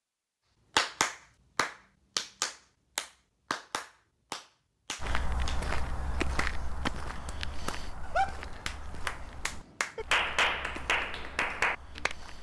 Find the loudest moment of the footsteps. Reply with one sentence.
The volume of the footsteps peaks at 6 seconds.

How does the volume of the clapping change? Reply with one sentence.
The loudness of the clapping goes down, then up.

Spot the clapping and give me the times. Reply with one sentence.
You can hear the clapping from 0.8 to 12.2 s.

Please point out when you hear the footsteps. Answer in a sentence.
The footsteps can be heard from 5.0 to 12.3 s.